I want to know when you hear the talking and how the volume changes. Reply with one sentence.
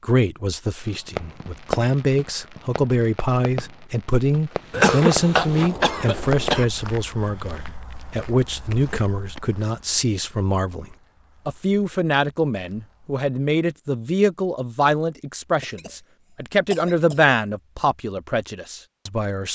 You can hear the talking from 0.0 to 19.4 s, at a steady volume.